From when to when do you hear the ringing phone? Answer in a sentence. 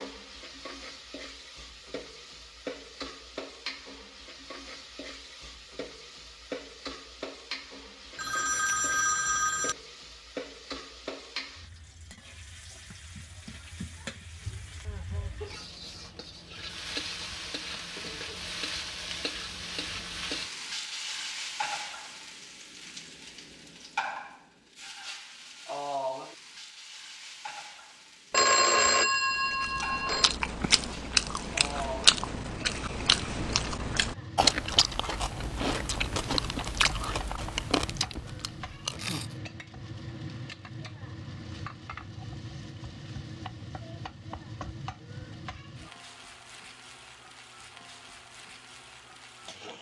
You can hear the ringing phone from 8.2 to 9.8 s and from 28.3 to 30.4 s.